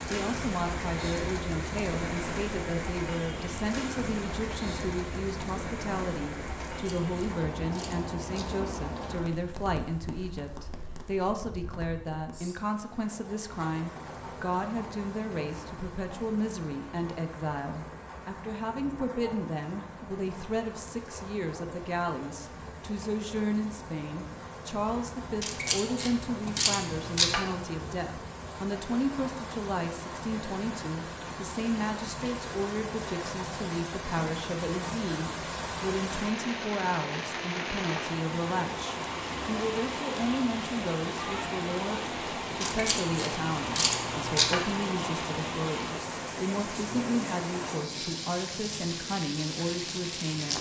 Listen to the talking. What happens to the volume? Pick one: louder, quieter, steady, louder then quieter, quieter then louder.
steady.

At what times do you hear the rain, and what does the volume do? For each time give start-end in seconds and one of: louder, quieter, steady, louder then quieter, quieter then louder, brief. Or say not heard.
0.0-50.5 quieter then louder.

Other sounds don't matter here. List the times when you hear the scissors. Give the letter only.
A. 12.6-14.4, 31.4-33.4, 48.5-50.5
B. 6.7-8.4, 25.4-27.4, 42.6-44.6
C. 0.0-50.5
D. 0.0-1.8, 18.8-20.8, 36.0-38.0
B.